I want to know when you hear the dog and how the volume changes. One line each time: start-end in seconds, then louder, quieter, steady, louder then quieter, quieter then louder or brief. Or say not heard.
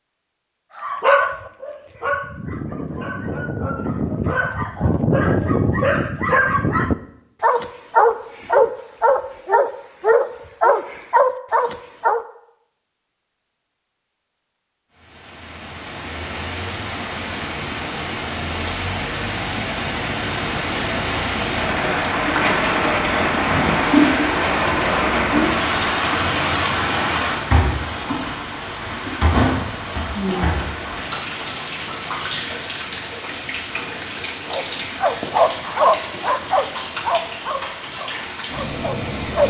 0.8-12.2 louder
34.5-39.4 quieter.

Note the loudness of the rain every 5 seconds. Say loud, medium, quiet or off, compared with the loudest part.
off, off, off, medium, loud, loud, medium, medium.